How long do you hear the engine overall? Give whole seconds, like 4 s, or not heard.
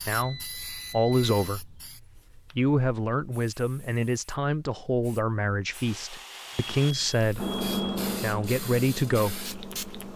3 s.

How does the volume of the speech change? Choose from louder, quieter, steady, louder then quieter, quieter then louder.
steady.